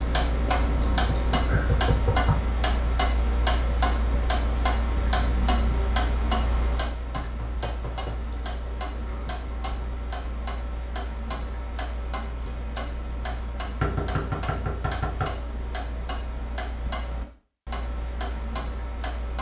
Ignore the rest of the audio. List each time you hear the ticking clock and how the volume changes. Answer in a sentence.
You can hear the ticking clock from 0.0 to 19.3 s, getting quieter.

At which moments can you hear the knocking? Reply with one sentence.
The knocking can be heard from 0.5 to 2.5 s, from 7.3 to 8.2 s and from 13.8 to 15.4 s.